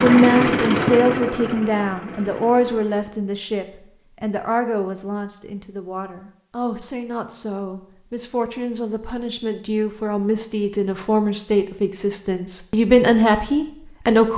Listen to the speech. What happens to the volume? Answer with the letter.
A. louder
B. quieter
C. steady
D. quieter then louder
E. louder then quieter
D.